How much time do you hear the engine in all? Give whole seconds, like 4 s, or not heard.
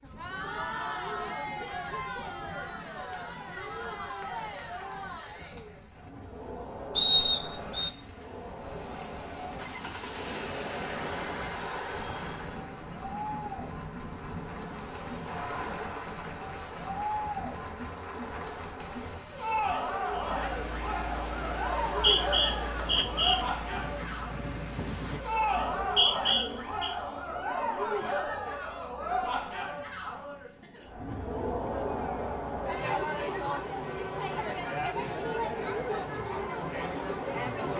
14 s.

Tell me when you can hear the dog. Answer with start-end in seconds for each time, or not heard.
not heard.